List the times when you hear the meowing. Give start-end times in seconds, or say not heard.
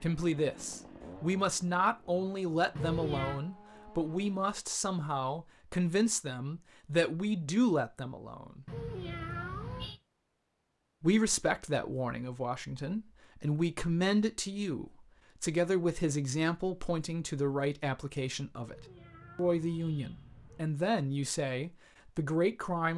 2.8-3.4, 8.7-10.0, 18.6-20.6.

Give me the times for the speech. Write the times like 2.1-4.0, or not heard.
0.0-8.7, 11.0-22.9.